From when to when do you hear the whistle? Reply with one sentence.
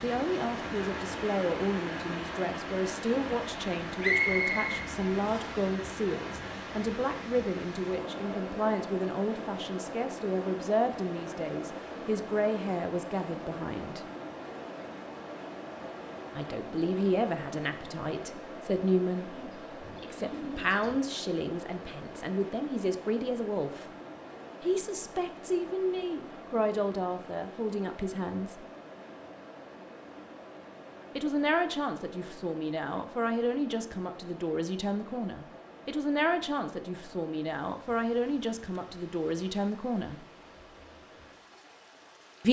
The whistle can be heard from 4.0 to 5.6 s.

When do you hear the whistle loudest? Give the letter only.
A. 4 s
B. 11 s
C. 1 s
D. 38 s
A.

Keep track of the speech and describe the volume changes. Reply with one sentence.
The loudness of the speech stays about the same.